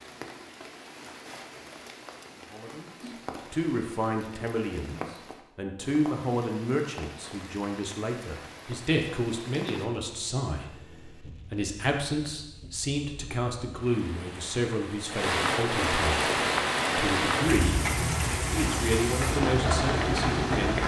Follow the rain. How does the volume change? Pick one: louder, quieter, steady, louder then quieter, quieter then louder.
louder.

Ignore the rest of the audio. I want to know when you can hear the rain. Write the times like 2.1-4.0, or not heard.
0.0-20.8.